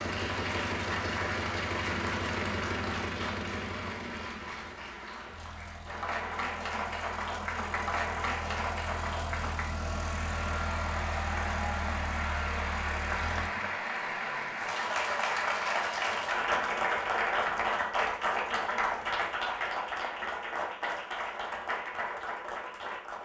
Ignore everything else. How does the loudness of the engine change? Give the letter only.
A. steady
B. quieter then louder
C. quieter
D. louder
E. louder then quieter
B.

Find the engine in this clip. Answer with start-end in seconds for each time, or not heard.
0.0-13.5.